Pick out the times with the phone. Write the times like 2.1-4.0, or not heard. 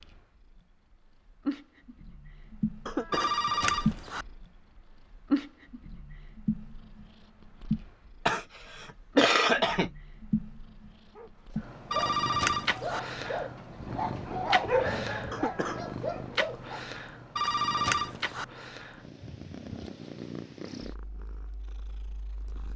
3.1-4.2, 11.9-13.0, 17.4-18.4.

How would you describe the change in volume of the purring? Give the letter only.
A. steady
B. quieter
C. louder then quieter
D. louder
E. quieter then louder
B.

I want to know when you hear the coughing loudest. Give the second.
9 s.